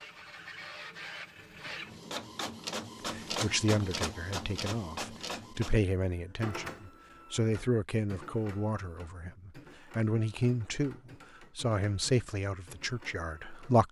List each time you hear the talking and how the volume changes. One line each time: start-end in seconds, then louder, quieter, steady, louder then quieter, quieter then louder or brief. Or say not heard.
3.1-13.8 steady.